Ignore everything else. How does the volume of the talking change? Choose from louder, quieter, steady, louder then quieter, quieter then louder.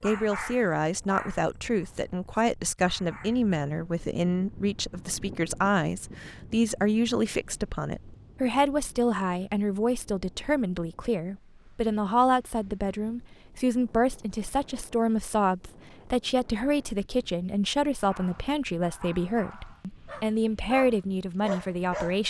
steady.